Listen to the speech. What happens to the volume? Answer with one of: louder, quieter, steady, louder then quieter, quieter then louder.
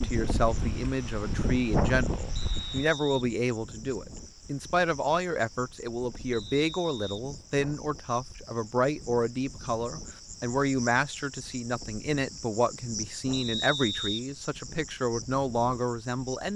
steady.